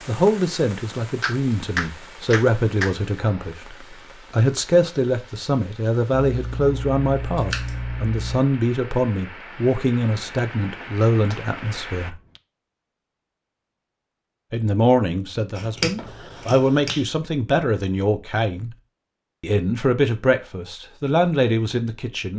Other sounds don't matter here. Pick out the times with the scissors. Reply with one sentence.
The scissors can be heard from 6.3 to 8.4 s and from 15.6 to 16.9 s.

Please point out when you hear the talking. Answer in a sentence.
You can hear the talking from 0.1 to 12.2 s, from 14.5 to 18.7 s and from 19.4 to 22.3 s.